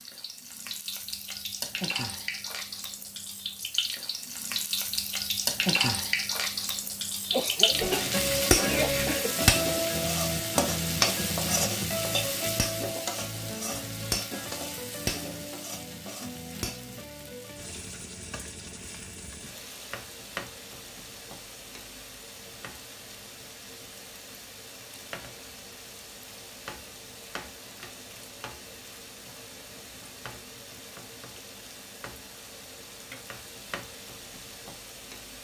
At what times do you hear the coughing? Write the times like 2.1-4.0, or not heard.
7.3-9.3.